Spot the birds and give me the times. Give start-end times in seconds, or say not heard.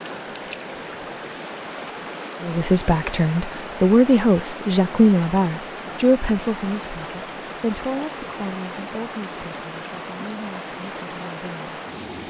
not heard.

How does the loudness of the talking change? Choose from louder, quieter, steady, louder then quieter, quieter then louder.
quieter.